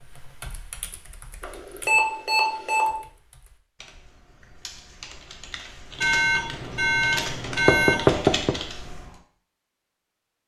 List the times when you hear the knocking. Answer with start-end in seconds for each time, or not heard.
7.7-8.6.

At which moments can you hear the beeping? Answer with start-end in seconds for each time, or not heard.
1.4-2.9, 6.0-8.1.